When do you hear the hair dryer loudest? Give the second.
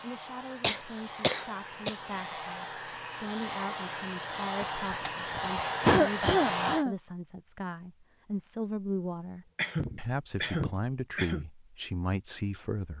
6 s.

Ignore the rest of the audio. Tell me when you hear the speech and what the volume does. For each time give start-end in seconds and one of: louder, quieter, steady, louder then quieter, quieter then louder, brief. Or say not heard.
0.0-12.9 louder.